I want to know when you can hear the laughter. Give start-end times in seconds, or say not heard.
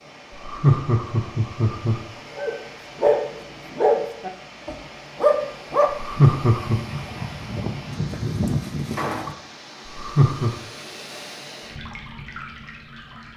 0.3-2.0, 5.9-6.8, 9.8-10.6.